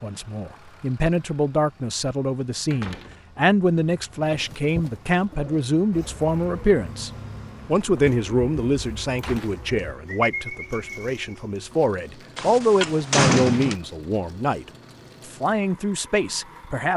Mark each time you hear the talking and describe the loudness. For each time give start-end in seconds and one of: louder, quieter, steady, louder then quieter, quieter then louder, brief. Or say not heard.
0.0-16.9 steady.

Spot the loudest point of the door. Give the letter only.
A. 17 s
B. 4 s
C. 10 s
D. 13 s
D.